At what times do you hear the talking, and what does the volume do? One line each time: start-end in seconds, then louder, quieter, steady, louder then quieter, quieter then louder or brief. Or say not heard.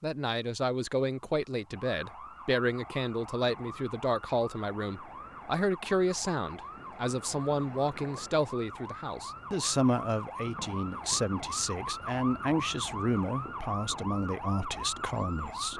0.0-15.7 steady.